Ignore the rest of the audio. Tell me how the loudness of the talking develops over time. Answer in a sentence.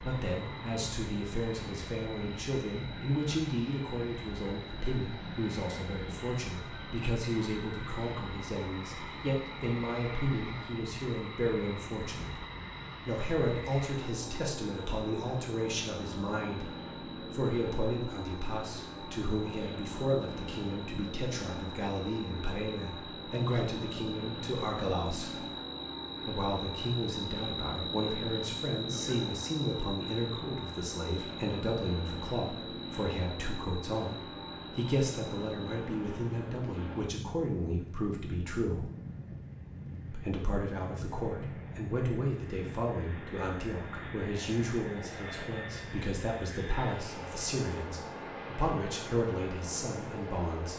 The volume of the talking stays about the same.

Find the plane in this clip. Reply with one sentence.
You can hear the plane from 0.0 to 50.7 s.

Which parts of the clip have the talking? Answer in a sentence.
You can hear the talking from 0.0 to 12.4 s, from 13.1 to 25.4 s, from 26.2 to 38.9 s and from 40.1 to 50.7 s.